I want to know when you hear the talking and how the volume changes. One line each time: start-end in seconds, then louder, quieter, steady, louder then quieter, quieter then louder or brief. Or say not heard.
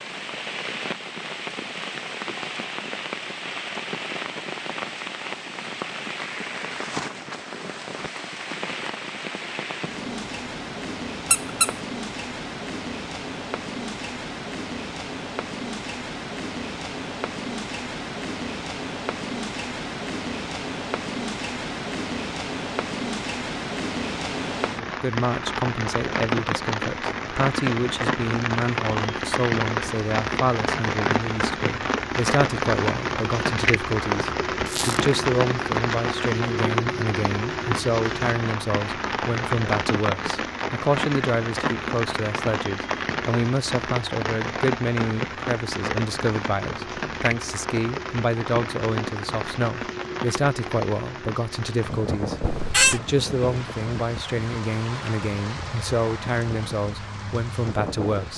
24.8-58.3 steady.